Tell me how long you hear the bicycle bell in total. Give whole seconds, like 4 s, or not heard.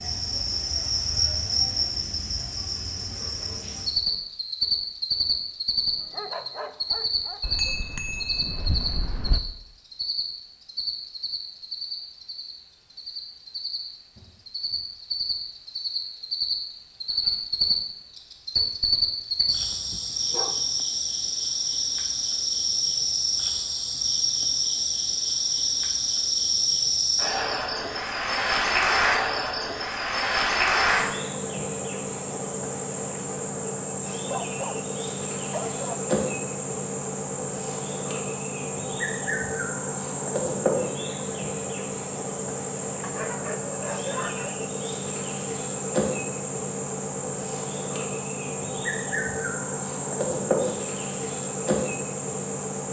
2 s.